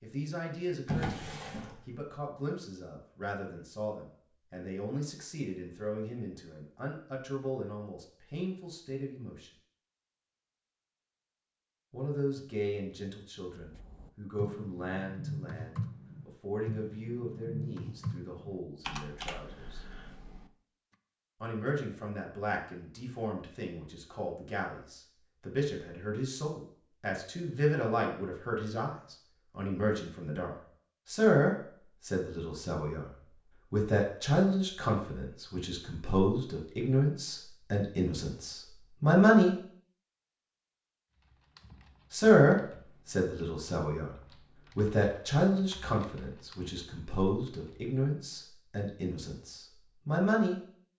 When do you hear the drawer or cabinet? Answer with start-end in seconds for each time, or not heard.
0.8-2.1.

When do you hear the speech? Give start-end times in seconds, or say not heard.
0.0-9.5, 11.9-19.8, 21.4-33.1, 33.7-39.5, 42.1-44.1, 44.8-50.6.